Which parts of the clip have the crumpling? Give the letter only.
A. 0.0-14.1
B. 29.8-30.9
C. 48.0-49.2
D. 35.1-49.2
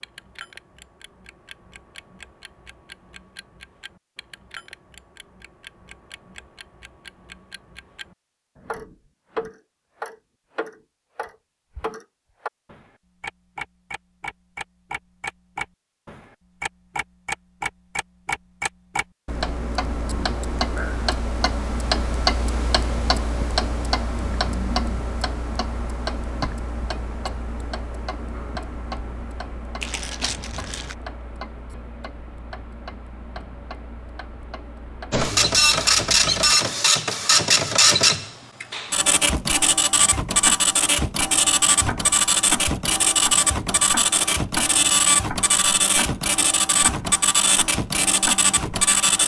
B.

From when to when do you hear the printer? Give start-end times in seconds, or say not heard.
35.1-49.2.